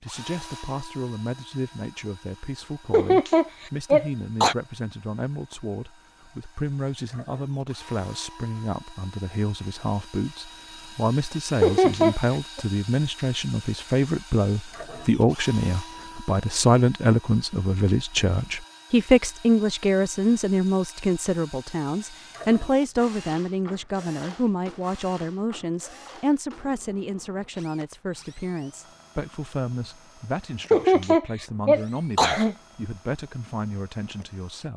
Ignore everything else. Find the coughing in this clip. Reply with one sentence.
The coughing can be heard from 2.9 to 4.5 s, from 11.6 to 12.6 s and from 30.7 to 32.5 s.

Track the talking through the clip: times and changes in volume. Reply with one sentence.
The talking can be heard from 0.0 to 34.7 s, getting louder then quieter.